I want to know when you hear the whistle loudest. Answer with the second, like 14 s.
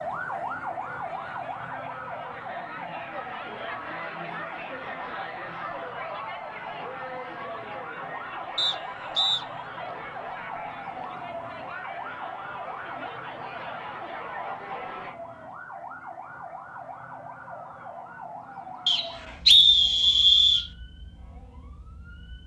20 s.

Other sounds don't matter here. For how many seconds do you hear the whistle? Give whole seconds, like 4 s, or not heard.
3 s.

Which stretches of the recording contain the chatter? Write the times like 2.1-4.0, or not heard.
0.0-15.2.